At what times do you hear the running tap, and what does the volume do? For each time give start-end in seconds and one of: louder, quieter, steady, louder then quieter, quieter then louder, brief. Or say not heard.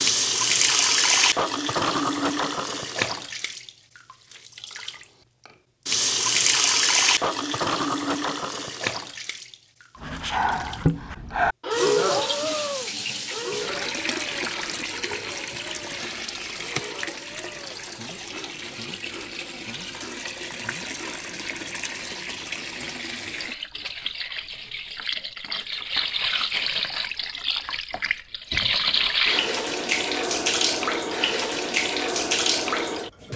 0.0-33.3 quieter then louder.